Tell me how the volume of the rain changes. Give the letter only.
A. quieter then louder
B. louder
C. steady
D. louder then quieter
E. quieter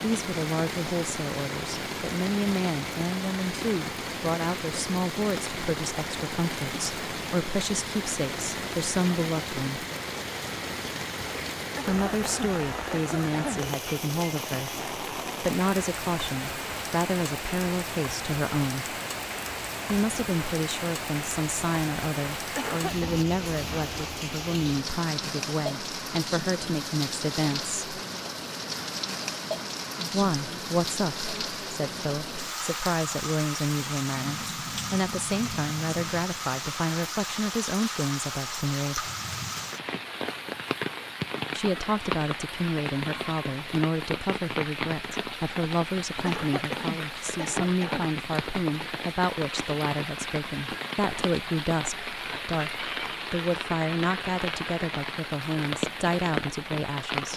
C.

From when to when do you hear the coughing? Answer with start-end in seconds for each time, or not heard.
11.8-13.7, 22.6-23.2, 46.2-48.1.